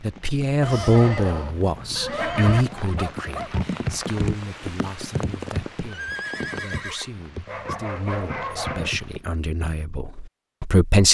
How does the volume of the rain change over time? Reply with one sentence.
The volume of the rain goes up, then down.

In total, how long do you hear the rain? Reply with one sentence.
You can hear the rain for 9 seconds altogether.